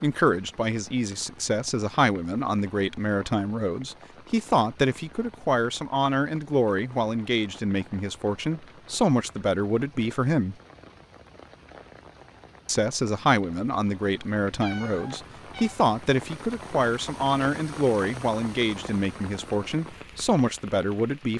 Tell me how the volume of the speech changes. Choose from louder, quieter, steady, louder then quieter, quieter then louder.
steady.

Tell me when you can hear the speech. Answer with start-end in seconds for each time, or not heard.
0.0-10.6, 12.7-21.3.